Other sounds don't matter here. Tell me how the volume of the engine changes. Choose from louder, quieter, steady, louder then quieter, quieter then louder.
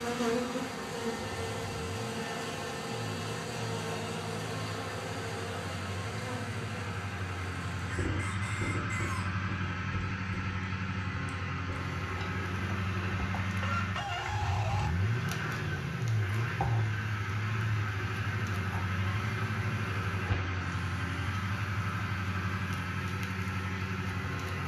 louder.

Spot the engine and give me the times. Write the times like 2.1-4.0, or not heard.
0.0-24.6.